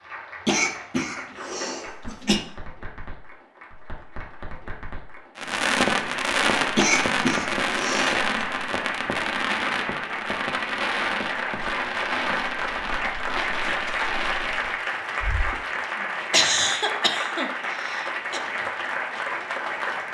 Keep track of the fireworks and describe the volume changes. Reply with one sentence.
The volume of the fireworks goes down.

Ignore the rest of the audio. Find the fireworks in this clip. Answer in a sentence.
You can hear the fireworks from 5.3 to 15.7 s.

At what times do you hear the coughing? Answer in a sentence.
The coughing can be heard from 0.5 to 2.4 s, from 6.8 to 8.4 s and from 16.3 to 18.4 s.